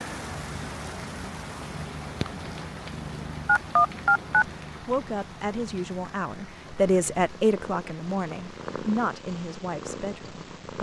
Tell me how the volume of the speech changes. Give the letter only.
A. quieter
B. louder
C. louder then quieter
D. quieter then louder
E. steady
C.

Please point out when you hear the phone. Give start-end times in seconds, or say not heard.
3.5-4.5.